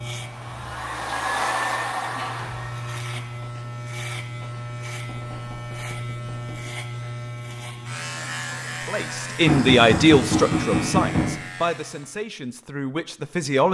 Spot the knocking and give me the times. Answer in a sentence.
You can hear the knocking from 2.0 to 2.6 s, from 5.0 to 6.7 s and from 9.4 to 11.3 s.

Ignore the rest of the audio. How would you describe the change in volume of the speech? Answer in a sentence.
The loudness of the speech goes down.